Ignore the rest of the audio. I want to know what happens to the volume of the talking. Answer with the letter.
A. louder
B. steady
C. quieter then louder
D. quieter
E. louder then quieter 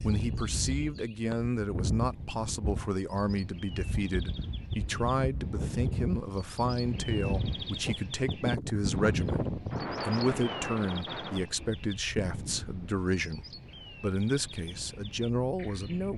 B.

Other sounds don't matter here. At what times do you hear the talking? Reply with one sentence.
You can hear the talking from 0.0 to 16.1 s.